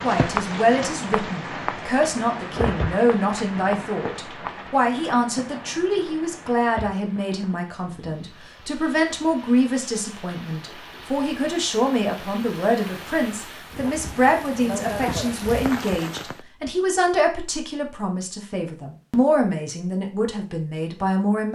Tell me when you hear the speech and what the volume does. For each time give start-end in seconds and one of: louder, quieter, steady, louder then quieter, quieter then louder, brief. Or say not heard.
0.0-21.5 steady.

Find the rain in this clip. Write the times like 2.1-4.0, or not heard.
0.0-16.4.